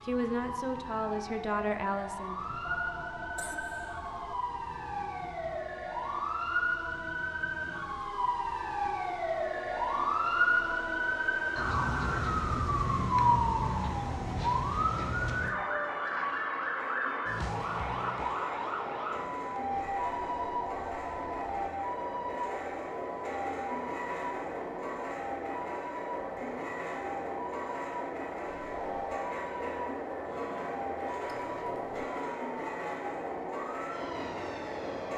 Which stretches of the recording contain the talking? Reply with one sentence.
The talking can be heard from 0.0 to 2.4 s.